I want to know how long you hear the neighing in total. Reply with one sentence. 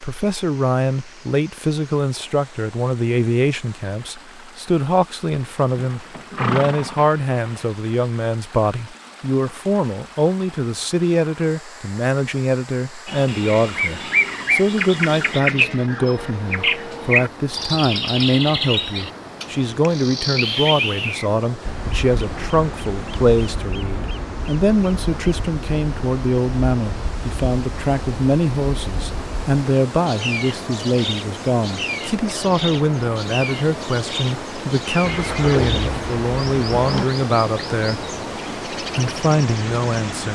The neighing can be heard for 4 seconds in total.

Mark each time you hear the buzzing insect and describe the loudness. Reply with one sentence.
You can't hear the buzzing insect here.